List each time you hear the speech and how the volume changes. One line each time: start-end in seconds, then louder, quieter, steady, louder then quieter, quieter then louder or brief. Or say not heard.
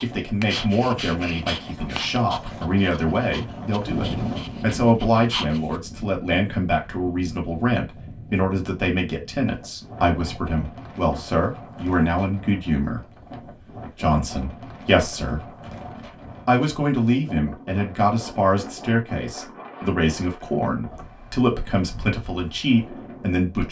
0.0-15.5 steady
16.4-23.6 steady.